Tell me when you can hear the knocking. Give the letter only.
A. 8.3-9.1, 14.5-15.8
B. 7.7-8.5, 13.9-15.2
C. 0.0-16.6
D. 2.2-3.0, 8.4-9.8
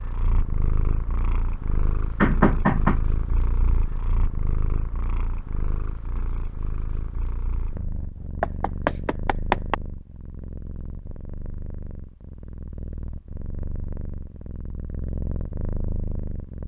D.